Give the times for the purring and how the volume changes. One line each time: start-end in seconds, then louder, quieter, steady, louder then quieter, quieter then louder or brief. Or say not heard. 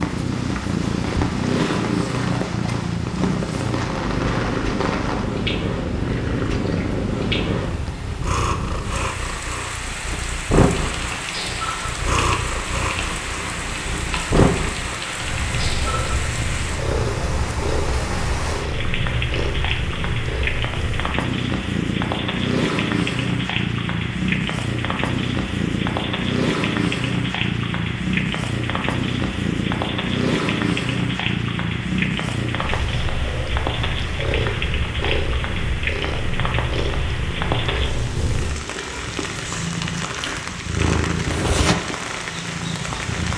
0.0-43.3 steady.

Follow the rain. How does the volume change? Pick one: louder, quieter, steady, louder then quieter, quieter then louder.
steady.